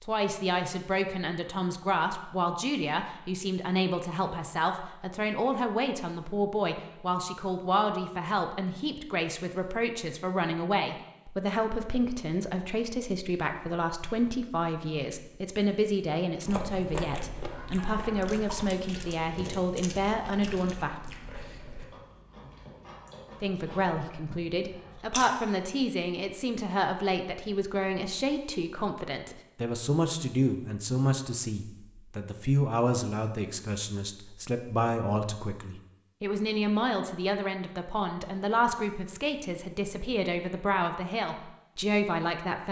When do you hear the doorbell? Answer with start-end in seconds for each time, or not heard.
not heard.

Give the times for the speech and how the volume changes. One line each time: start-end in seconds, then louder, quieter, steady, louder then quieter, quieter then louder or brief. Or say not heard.
0.0-20.9 steady
23.4-42.6 steady.